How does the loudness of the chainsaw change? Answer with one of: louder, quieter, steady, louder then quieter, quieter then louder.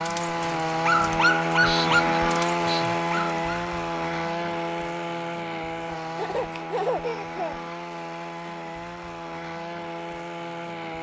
quieter.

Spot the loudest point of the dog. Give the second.
1 s.